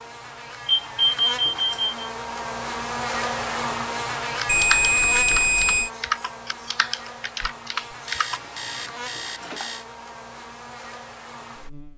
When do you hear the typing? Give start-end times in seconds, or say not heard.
4.3-8.4.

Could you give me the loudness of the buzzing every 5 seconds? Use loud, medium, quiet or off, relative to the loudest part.
loud, medium, medium.